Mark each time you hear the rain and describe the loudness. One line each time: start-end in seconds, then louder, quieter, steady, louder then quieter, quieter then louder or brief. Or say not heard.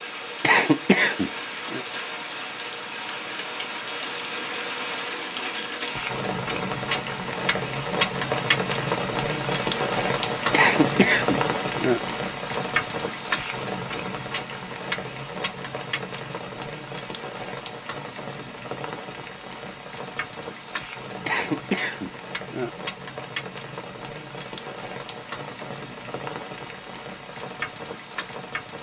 0.0-28.7 louder then quieter.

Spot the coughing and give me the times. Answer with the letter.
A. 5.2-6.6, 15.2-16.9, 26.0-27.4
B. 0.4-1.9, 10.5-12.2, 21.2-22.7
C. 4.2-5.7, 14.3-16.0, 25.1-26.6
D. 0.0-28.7
B.